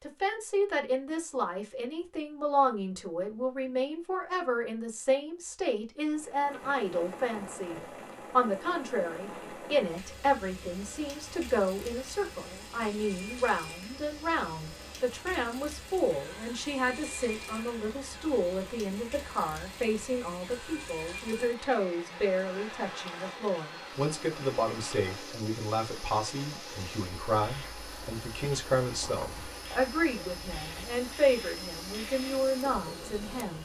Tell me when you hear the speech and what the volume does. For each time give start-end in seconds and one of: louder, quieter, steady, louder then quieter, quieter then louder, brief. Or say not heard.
0.0-33.6 steady.